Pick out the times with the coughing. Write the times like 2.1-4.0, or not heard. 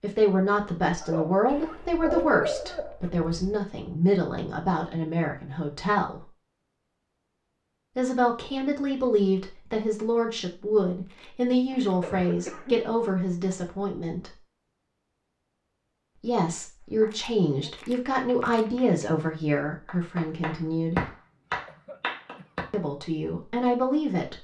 1.0-3.0, 11.7-12.9, 21.4-22.6.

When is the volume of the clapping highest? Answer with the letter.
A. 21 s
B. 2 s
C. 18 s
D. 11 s
A.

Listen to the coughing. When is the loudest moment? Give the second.
2 s.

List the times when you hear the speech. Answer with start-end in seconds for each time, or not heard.
0.0-6.2, 8.0-14.3, 16.2-21.1, 22.7-24.3.